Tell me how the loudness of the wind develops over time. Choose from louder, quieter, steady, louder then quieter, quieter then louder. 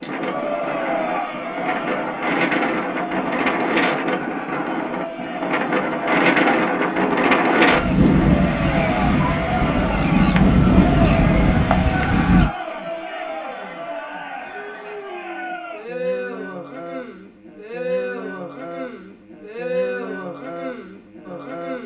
louder.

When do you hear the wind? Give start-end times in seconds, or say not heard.
0.0-12.5.